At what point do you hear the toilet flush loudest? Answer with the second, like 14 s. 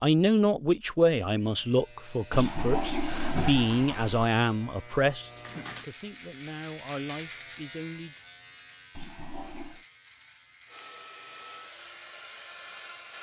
3 s.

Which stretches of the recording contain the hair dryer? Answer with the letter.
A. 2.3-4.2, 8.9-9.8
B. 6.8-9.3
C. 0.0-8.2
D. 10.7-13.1
D.